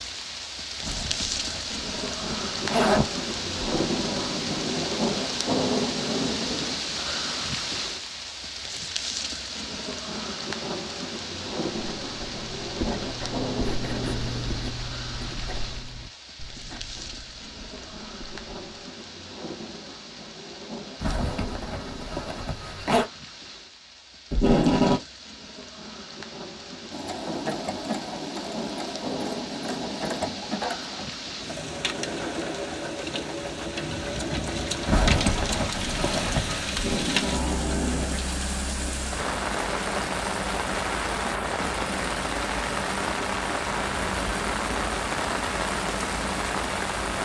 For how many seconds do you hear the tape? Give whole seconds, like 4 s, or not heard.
4 s.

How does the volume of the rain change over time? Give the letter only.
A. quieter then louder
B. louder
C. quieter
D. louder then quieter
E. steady
A.